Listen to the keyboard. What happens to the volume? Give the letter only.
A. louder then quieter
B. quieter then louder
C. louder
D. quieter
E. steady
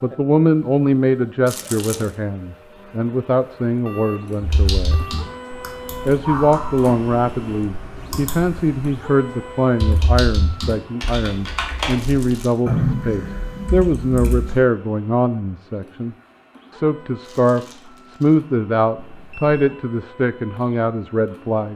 A.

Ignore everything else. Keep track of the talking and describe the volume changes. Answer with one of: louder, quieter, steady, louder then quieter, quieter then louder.
steady.